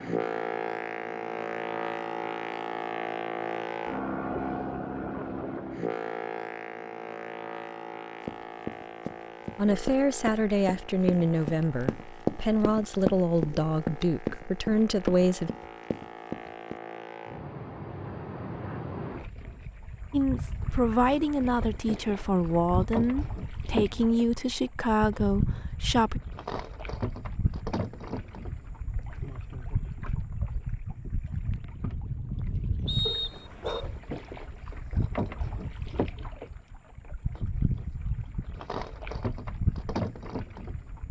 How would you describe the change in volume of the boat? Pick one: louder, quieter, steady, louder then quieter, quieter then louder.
quieter then louder.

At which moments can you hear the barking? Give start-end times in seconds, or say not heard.
33.0-34.0.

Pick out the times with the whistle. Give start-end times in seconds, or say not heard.
32.9-33.9.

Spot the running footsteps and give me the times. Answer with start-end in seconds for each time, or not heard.
8.2-16.8.